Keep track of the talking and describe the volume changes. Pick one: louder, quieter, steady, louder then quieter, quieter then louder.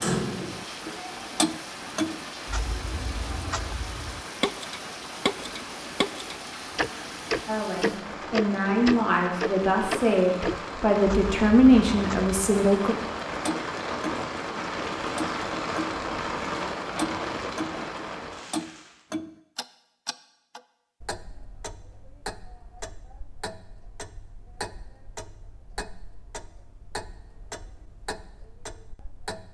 louder.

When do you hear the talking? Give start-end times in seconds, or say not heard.
7.5-12.9.